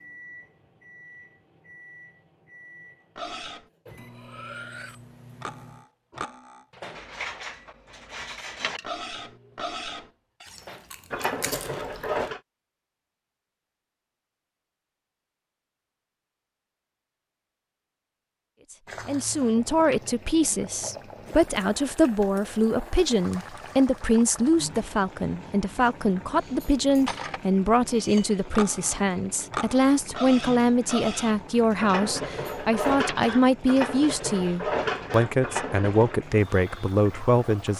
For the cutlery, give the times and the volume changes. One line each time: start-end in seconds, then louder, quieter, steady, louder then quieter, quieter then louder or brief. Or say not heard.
3.1-12.4 louder
27.1-36.2 louder.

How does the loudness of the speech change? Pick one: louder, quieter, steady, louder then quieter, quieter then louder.
steady.